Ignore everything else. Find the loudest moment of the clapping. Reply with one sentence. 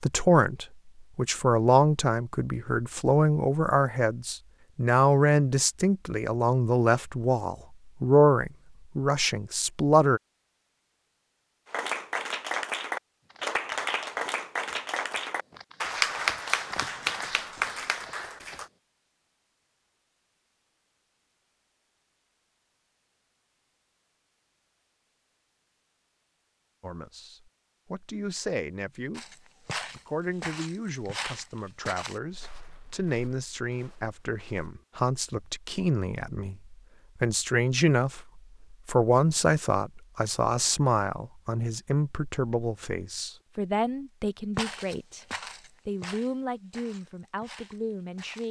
The loudest moment of the clapping is at 16 seconds.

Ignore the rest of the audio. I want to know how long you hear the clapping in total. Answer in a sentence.
You can hear the clapping for 7 seconds altogether.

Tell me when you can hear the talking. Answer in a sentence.
You can hear the talking from 0.0 to 10.2 s, from 26.8 to 45.2 s and from 45.9 to 48.4 s.